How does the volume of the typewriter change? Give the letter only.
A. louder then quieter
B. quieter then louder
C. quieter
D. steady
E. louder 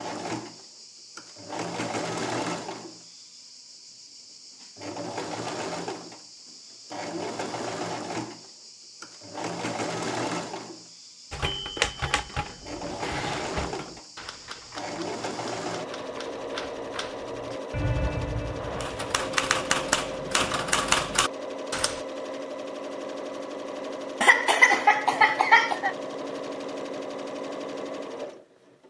B.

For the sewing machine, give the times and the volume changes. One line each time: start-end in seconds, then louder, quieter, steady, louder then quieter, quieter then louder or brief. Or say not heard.
0.0-28.8 steady.